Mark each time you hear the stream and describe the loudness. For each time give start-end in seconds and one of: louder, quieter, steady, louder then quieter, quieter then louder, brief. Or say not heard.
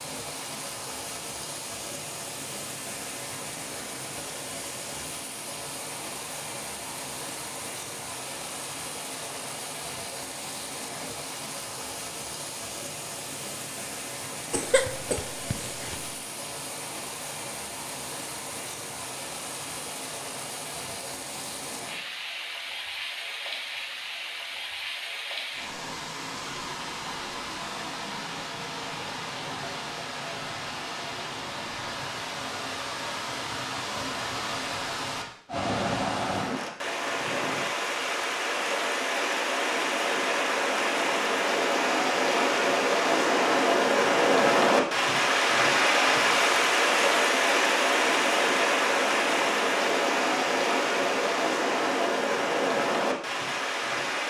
0.0-54.2 louder.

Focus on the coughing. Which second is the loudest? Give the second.
15 s.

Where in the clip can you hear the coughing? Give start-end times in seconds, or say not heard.
14.5-16.1.